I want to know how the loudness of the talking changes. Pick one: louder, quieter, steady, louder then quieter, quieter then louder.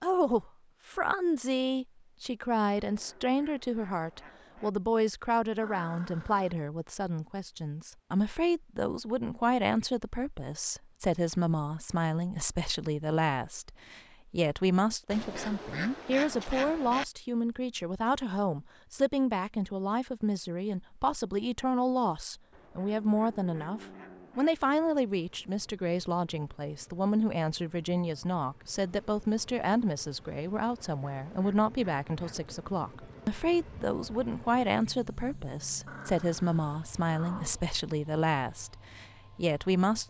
steady.